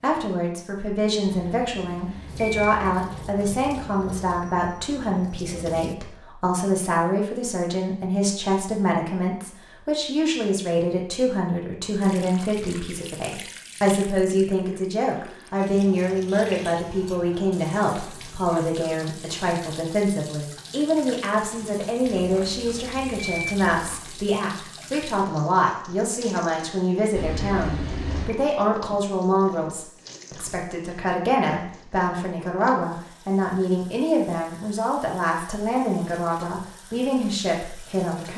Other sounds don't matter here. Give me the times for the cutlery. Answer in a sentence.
The cutlery can't be heard in this clip.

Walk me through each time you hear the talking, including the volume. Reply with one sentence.
You can hear the talking from 0.0 to 38.3 s, at a steady volume.